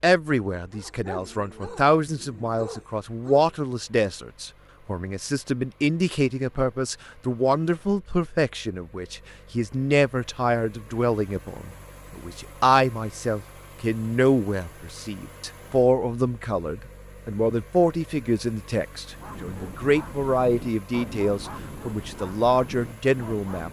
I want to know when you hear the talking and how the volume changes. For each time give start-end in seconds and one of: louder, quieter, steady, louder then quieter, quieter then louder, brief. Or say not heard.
0.0-23.6 steady.